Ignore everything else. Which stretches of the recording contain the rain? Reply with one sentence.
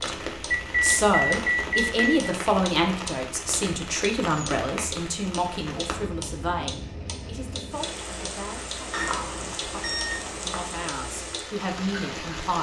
You can hear the rain from 0.0 to 12.5 s.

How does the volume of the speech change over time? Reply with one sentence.
The volume of the speech goes down, then up.